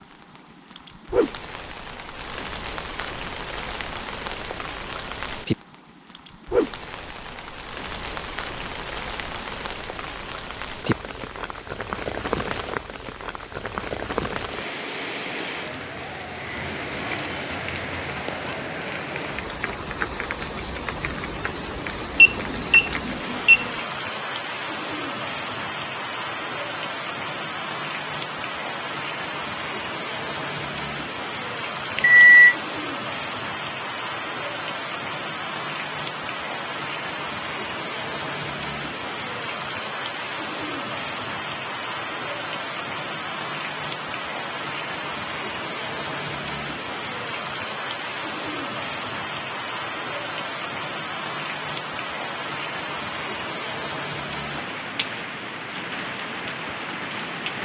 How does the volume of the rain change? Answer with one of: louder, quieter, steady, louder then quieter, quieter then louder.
steady.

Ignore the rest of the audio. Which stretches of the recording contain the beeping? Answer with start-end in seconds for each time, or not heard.
22.1-23.7, 31.9-32.5.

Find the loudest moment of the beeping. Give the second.
32 s.